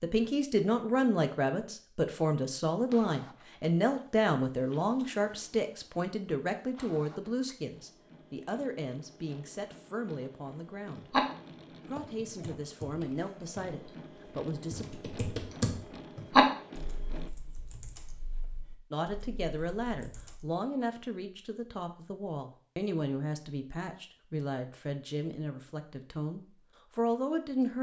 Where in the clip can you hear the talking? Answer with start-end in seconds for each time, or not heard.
0.0-11.1, 11.8-14.8, 18.9-27.7.